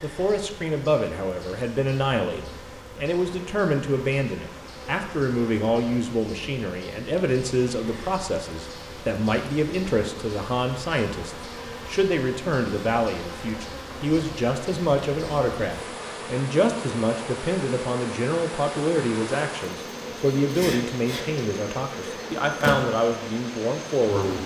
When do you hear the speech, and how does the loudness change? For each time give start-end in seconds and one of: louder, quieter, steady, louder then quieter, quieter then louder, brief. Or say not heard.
0.0-24.4 steady.